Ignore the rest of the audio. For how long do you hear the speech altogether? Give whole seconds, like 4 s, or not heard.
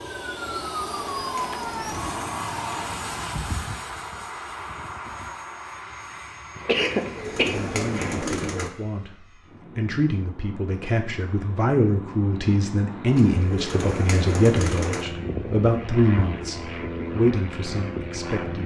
11 s.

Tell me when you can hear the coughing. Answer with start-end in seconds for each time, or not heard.
6.5-8.2.